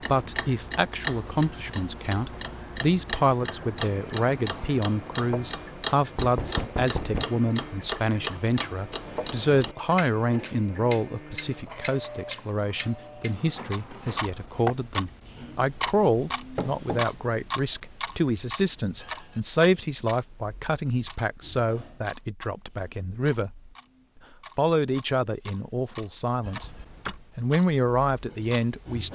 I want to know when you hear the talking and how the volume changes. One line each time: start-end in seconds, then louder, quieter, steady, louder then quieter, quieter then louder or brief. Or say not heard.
0.1-23.7 steady
24.6-26.7 brief
27.4-29.1 brief.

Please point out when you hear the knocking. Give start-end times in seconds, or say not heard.
6.2-7.4, 16.6-17.1, 26.4-27.2.